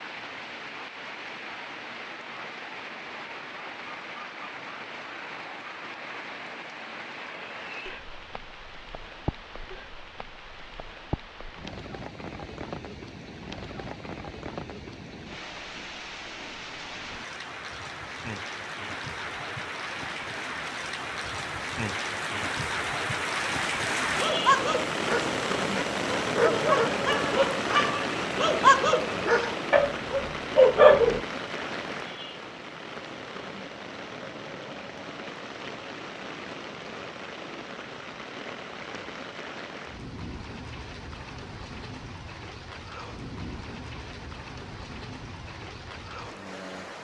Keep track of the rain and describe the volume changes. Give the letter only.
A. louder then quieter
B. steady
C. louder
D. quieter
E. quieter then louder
A.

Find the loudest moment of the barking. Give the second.
31 s.